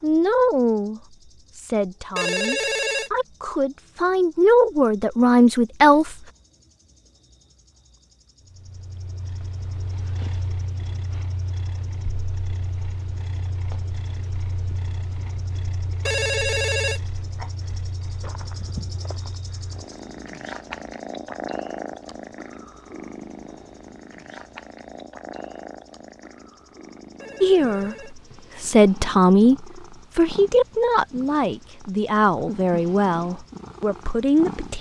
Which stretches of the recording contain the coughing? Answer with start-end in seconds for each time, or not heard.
not heard.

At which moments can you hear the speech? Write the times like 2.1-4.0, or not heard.
0.0-6.2, 27.4-34.7.